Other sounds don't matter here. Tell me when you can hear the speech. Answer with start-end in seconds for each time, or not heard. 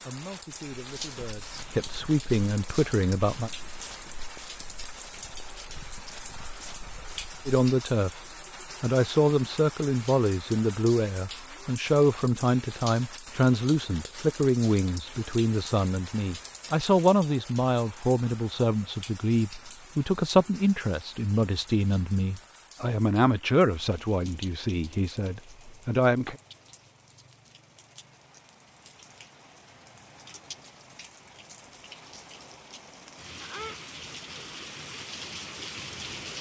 0.1-3.5, 7.5-8.2, 8.8-26.4.